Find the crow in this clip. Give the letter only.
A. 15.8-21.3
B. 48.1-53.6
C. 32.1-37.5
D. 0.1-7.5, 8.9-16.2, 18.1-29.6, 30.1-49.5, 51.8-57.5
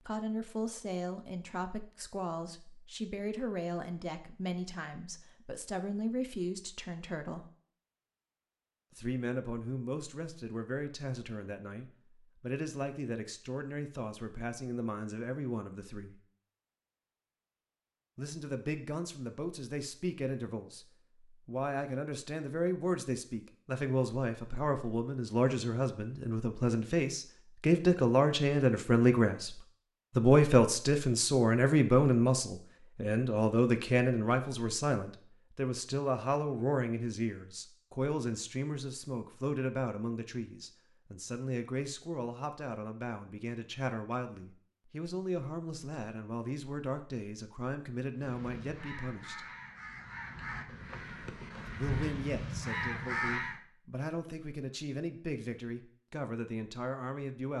B.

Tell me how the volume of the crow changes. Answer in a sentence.
The volume of the crow goes up.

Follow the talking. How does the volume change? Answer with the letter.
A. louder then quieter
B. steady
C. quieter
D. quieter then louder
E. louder
A.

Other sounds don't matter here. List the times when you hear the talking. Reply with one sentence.
You can hear the talking from 0.1 to 7.5 s, from 8.9 to 16.2 s, from 18.1 to 29.6 s, from 30.1 to 49.5 s and from 51.8 to 57.5 s.